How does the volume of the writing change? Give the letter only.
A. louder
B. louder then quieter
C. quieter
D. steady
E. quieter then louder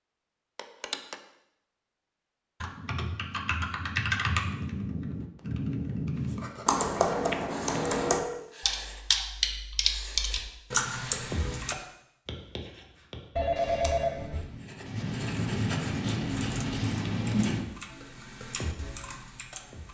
A.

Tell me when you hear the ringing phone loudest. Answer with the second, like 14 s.
14 s.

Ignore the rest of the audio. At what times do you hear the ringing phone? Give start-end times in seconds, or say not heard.
0.6-1.1, 7.1-8.4, 13.3-14.4.